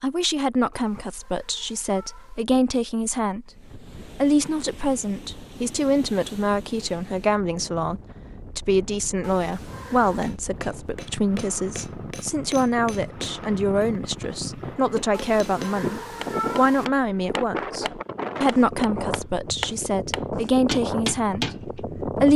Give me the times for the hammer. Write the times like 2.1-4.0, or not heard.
10.2-21.6.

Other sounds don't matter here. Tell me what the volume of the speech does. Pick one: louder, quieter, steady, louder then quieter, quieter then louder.
steady.